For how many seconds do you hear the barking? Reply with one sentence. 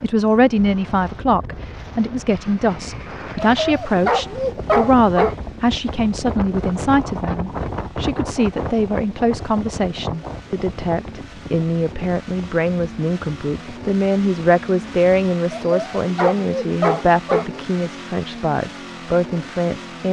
The barking can be heard for 4 seconds in total.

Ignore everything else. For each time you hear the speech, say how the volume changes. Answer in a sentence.
The speech can be heard from 0.0 to 20.0 s, at a steady volume.